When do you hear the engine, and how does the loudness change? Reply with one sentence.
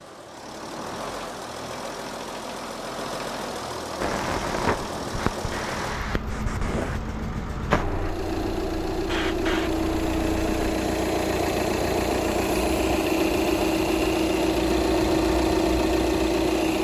The engine can be heard from 0.0 to 16.7 s, getting louder.